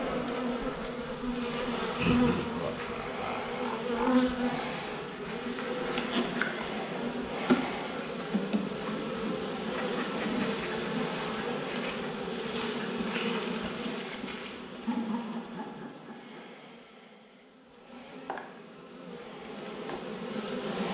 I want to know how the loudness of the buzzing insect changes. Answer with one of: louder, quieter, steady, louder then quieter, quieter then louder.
quieter.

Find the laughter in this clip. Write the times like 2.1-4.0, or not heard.
1.9-4.3, 9.8-10.7, 14.8-16.6.